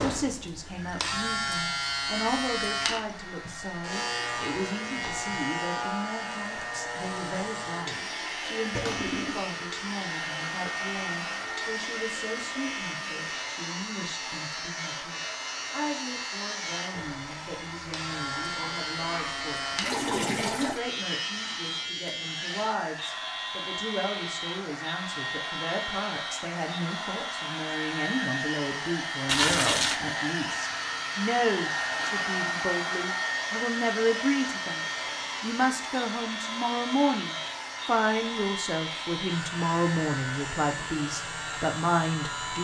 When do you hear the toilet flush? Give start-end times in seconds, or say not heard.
8.7-9.6, 18.4-20.8, 29.2-30.0.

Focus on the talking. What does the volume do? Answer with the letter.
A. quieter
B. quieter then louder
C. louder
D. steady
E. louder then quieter
C.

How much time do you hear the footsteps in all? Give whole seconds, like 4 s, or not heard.
not heard.